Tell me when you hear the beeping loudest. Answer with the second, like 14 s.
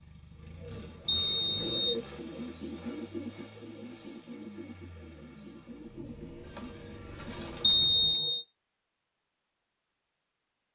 8 s.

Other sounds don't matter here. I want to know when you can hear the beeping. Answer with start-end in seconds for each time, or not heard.
1.1-1.8, 7.6-8.4.